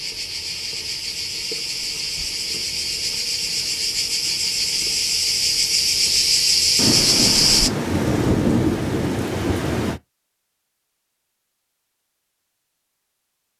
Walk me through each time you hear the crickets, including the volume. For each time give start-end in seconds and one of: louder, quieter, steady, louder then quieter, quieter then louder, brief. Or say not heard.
0.0-7.7 louder.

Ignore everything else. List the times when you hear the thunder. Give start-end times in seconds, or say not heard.
6.8-10.0.